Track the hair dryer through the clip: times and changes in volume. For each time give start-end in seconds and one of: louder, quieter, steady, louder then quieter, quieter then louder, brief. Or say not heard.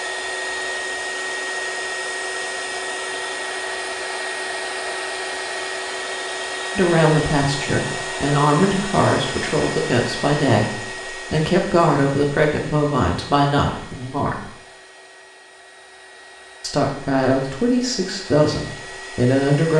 0.0-19.7 quieter.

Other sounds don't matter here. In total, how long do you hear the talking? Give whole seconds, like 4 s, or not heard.
11 s.